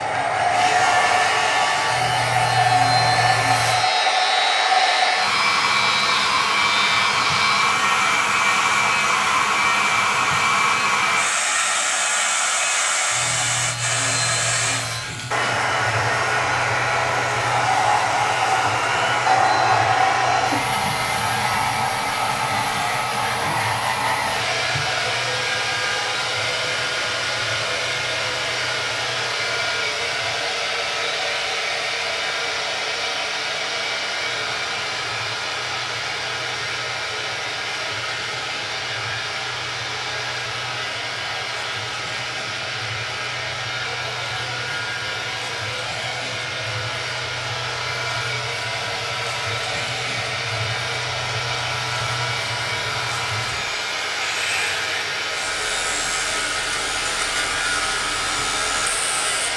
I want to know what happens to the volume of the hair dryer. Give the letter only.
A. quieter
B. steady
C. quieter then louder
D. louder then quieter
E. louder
A.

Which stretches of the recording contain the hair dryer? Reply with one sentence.
The hair dryer can be heard from 0.0 to 59.5 s.